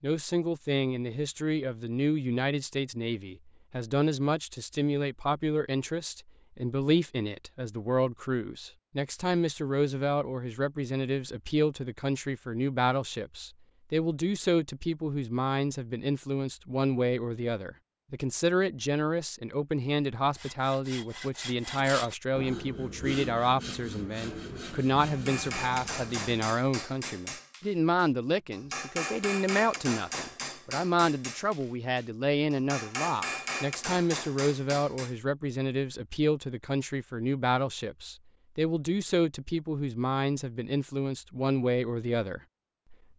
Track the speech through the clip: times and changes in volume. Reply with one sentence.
You can hear the speech from 0.0 to 43.0 s, at a steady volume.